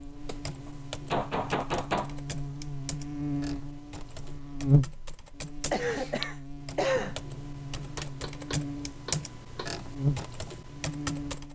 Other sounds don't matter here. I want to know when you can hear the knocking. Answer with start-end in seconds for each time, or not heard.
0.7-2.1, 8.0-9.8.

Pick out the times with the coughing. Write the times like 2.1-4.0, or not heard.
5.7-7.2.